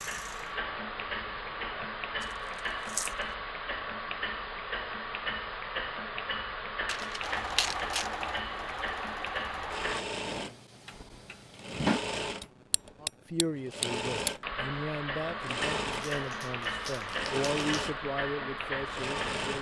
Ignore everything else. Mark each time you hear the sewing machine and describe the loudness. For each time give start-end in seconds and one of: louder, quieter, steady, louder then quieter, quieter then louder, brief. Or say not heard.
7.2-19.5 steady.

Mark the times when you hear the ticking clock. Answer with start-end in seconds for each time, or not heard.
0.0-19.5.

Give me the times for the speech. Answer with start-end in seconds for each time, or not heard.
13.0-19.5.